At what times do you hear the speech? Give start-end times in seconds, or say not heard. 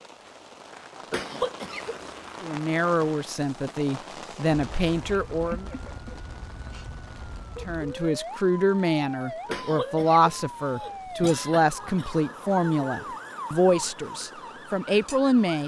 2.4-5.7, 7.7-15.6.